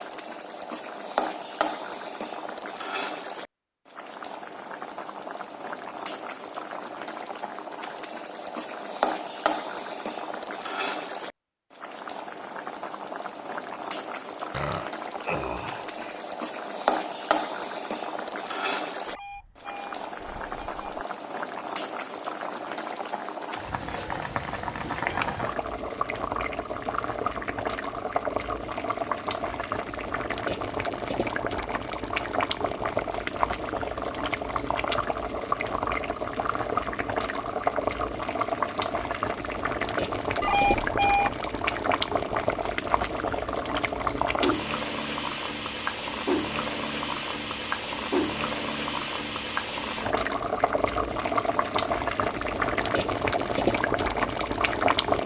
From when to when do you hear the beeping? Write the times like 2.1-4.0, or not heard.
19.1-21.1, 40.4-41.4.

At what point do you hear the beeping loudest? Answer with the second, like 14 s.
41 s.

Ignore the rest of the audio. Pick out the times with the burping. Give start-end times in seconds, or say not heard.
14.5-16.2.